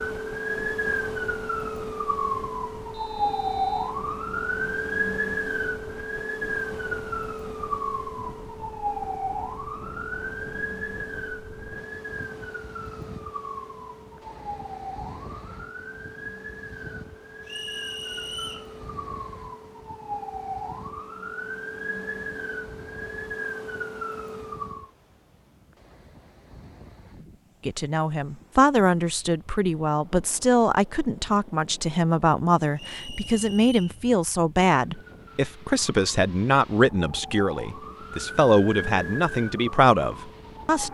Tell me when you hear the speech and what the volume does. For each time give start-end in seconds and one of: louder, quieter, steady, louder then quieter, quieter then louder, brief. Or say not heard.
27.6-40.8 steady.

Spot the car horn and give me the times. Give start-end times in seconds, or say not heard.
not heard.